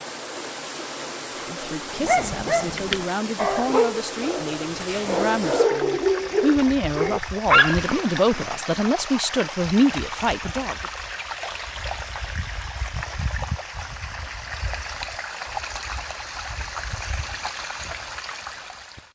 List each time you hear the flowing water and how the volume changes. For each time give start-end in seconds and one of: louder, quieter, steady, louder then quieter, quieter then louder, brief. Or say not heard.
0.0-19.1 steady.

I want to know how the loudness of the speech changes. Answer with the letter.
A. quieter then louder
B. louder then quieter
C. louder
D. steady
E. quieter
C.